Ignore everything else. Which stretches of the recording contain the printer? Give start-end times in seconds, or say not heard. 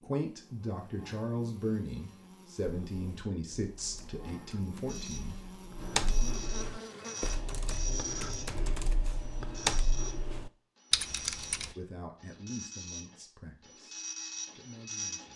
4.8-15.3.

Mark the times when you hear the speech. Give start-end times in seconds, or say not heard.
0.0-5.3, 11.8-15.3.